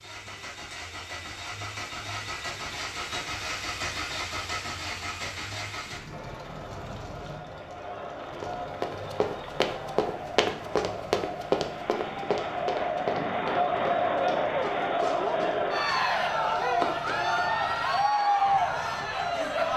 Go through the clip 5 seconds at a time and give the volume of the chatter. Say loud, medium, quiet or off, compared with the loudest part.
off, quiet, loud, loud.